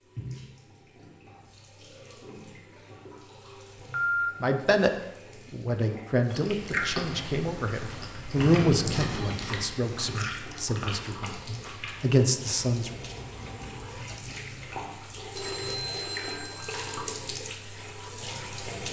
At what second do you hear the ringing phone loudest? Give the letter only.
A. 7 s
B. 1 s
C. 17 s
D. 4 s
D.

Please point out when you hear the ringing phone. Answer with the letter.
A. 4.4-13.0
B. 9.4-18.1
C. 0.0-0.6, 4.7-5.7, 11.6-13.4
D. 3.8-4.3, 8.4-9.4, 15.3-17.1
D.